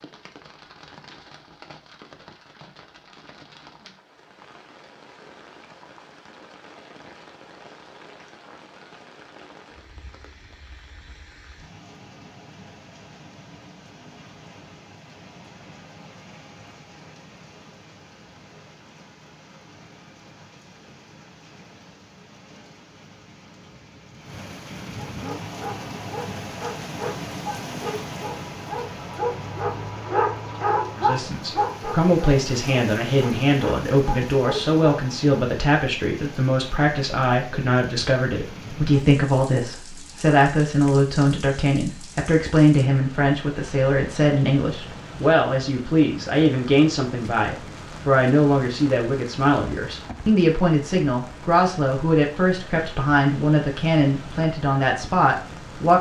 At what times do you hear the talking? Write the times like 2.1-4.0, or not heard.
30.9-55.9.